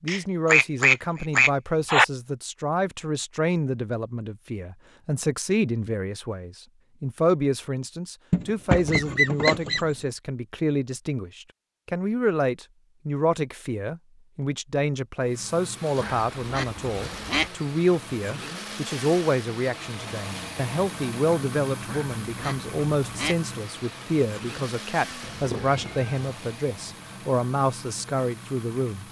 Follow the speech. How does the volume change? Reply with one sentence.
The loudness of the speech stays about the same.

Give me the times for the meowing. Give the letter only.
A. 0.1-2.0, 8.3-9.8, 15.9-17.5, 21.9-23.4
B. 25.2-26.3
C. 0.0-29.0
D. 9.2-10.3
B.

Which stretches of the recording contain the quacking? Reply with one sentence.
The quacking can be heard from 0.1 to 2.0 s, from 8.3 to 9.8 s, from 15.9 to 17.5 s and from 21.9 to 23.4 s.